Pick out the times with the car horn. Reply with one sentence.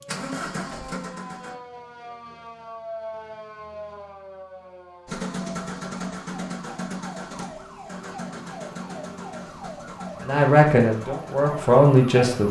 The car horn can't be heard in this clip.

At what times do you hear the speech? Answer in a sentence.
You can hear the speech from 10.2 to 12.4 s.